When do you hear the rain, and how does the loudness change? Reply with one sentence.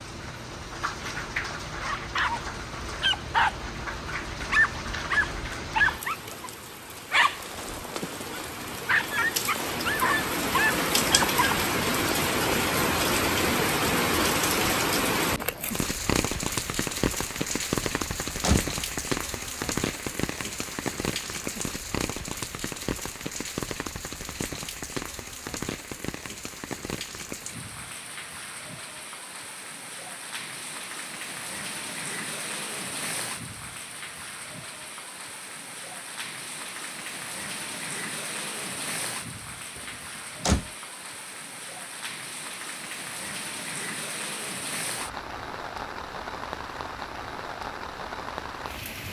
The rain can be heard from 0.0 to 49.0 s, getting louder then quieter.